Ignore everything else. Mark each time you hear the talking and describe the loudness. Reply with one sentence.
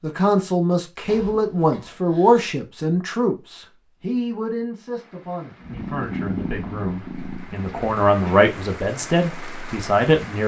The talking can be heard from 0.0 to 10.4 s, getting quieter then louder.